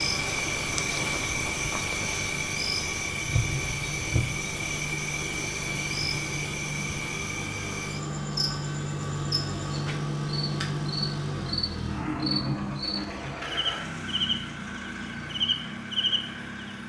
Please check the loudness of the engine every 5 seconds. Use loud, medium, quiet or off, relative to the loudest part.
medium, loud, loud, medium.